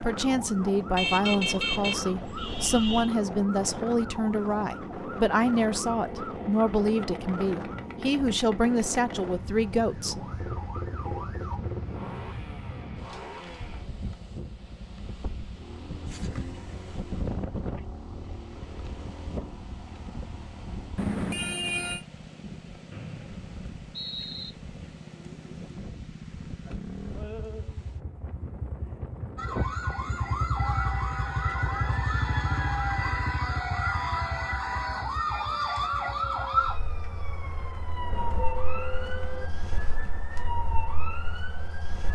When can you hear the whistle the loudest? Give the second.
24 s.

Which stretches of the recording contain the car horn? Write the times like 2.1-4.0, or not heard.
0.9-3.1, 20.9-22.1, 38.0-39.5.